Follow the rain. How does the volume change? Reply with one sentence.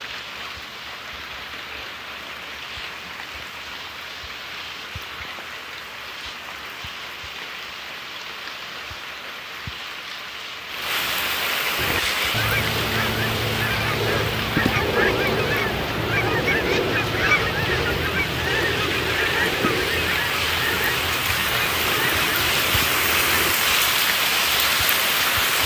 The loudness of the rain goes up.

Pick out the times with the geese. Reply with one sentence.
You can hear the geese from 11.8 to 23.6 s.